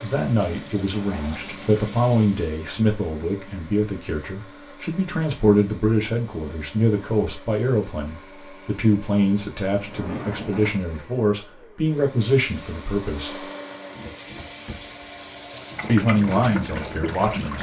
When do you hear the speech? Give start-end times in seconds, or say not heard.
0.0-13.4, 15.8-17.5.